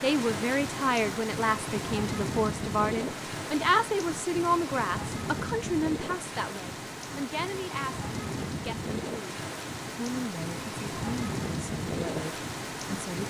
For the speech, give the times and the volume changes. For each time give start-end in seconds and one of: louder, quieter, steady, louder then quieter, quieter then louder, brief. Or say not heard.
0.0-13.2 quieter.